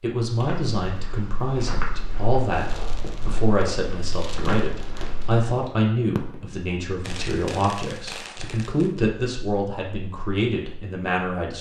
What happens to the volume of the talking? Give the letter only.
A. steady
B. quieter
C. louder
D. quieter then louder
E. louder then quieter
A.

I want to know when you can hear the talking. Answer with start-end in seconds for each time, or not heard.
0.0-11.5.